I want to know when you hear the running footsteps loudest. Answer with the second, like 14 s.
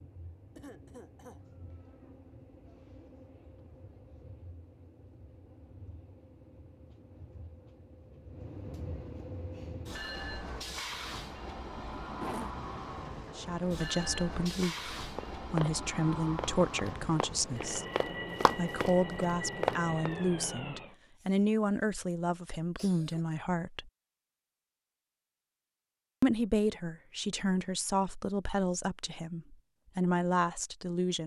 20 s.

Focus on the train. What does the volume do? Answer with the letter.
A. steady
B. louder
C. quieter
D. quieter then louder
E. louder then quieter
B.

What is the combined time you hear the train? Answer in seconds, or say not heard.
21 s.